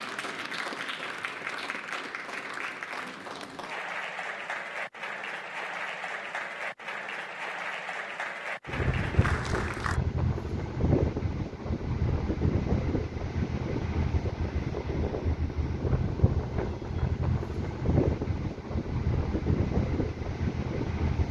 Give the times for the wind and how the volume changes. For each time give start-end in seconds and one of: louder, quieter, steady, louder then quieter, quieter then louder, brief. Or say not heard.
8.7-21.2 steady.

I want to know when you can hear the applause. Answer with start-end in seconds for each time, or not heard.
0.0-10.0.